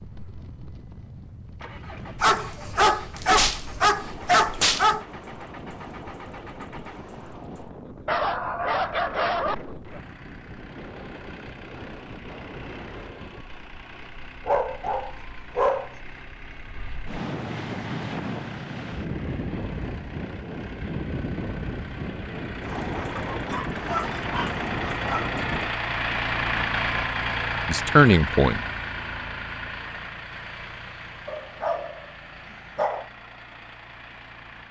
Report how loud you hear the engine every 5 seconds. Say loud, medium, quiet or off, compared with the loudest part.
quiet, quiet, quiet, quiet, medium, loud, quiet.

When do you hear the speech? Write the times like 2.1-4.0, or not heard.
27.6-28.6.